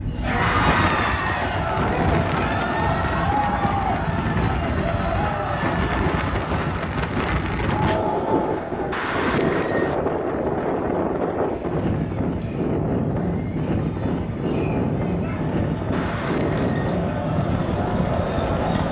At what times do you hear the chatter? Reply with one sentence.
You can hear the chatter from 0.0 to 18.8 s.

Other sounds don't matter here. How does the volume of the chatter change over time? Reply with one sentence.
The volume of the chatter goes down, then up.